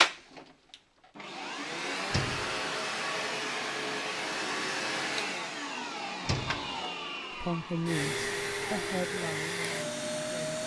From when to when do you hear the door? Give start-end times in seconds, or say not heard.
2.1-2.6, 6.2-6.8.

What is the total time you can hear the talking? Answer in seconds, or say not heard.
3 s.